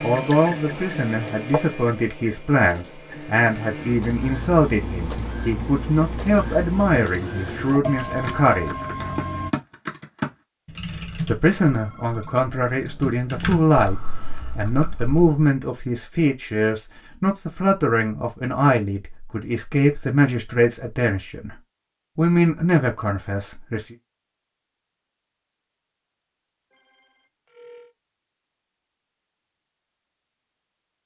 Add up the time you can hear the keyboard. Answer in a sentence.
The keyboard can be heard for 7 seconds in total.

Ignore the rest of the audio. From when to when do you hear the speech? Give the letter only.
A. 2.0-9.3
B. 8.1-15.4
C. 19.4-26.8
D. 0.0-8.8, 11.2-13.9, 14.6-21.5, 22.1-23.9
D.